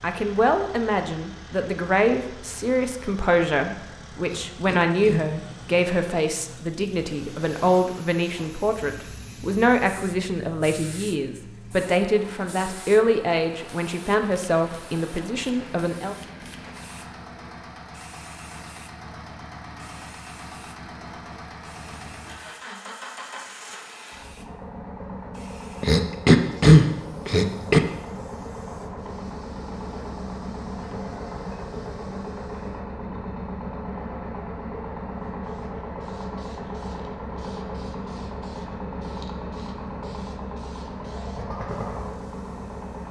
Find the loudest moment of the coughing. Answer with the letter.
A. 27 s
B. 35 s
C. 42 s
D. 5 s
A.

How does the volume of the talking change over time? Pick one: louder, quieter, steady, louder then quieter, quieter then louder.
steady.